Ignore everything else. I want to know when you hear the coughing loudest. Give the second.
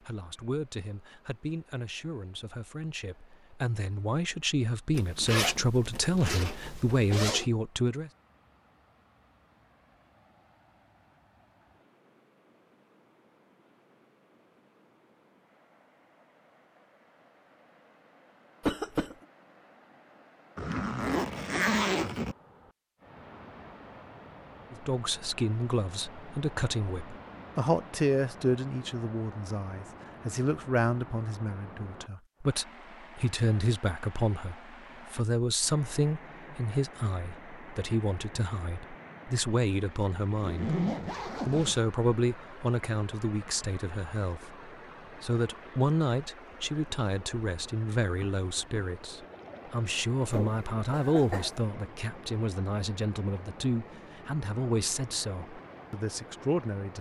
19 s.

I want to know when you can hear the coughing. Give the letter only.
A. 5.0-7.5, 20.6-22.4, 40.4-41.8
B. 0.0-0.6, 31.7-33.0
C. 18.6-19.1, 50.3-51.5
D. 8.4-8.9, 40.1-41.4
C.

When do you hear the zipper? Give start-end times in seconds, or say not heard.
5.0-7.5, 20.6-22.4, 40.4-41.8.